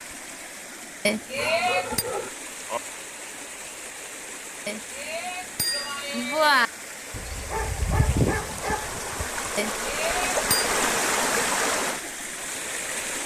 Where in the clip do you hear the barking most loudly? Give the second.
8 s.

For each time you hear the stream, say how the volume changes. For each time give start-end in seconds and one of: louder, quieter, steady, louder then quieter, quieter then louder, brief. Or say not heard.
0.0-13.2 louder.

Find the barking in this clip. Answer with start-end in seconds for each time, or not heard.
1.4-2.8, 7.1-9.3.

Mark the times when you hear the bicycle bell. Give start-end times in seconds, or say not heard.
1.1-2.0, 4.7-6.7, 9.6-10.7.